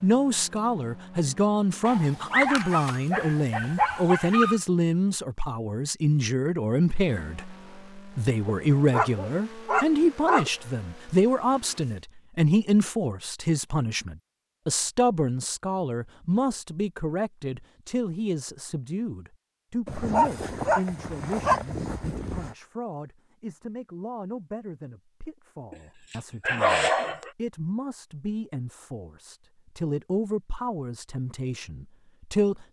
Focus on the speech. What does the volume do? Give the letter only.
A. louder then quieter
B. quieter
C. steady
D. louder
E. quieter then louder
B.